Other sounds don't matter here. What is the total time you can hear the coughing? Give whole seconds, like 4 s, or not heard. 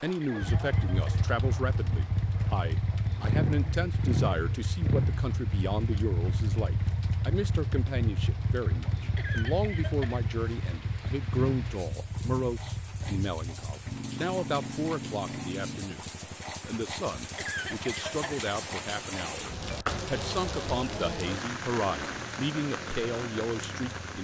3 s.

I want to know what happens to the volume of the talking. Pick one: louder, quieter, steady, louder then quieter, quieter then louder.
steady.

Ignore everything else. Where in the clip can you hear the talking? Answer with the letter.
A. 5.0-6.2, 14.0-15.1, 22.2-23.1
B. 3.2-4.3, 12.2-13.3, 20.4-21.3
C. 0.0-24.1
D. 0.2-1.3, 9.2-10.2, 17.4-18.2
C.